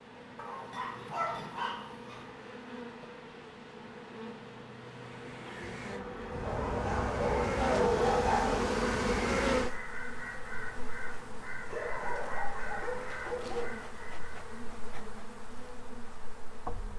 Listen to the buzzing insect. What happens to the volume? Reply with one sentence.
The volume of the buzzing insect goes up, then down.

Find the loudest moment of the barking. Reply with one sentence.
The loudest moment of the barking is at 8 seconds.